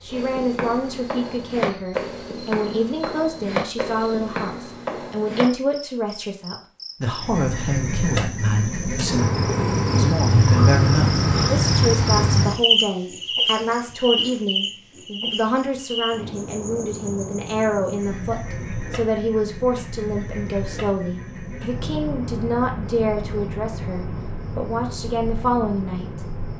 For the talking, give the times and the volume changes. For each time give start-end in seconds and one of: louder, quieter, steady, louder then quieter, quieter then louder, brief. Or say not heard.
0.0-26.2 steady.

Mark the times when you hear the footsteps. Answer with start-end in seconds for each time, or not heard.
0.1-5.5.